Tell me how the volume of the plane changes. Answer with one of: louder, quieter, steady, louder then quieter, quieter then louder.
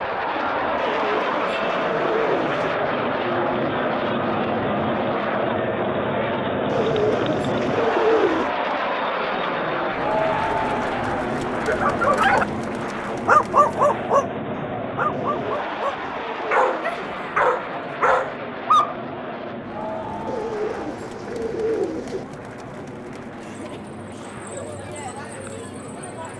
quieter.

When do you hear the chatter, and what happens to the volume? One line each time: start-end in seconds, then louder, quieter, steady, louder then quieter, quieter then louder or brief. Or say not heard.
0.1-26.3 quieter.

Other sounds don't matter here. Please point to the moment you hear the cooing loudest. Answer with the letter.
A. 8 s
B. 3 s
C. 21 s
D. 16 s
A.